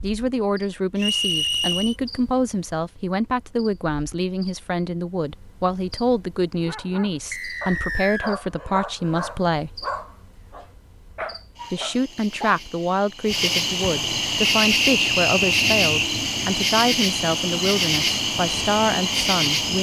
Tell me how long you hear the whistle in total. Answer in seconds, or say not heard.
4 s.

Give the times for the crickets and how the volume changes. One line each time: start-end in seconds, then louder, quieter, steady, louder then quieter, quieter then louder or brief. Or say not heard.
0.0-19.7 louder.